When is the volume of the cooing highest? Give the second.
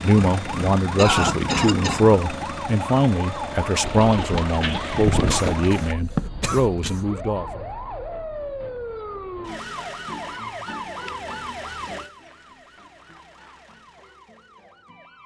5 s.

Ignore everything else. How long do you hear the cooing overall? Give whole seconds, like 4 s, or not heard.
2 s.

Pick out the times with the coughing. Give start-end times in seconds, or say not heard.
0.9-2.0, 5.2-7.0, 10.7-11.7.